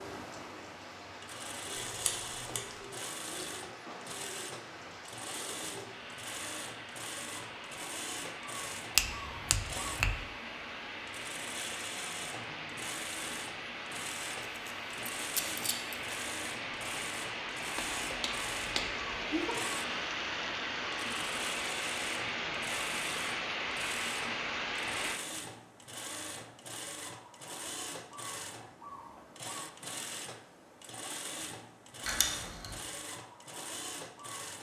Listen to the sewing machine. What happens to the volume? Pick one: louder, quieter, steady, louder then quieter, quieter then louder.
steady.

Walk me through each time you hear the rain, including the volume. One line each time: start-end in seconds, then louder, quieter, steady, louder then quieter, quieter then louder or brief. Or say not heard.
0.0-25.2 louder.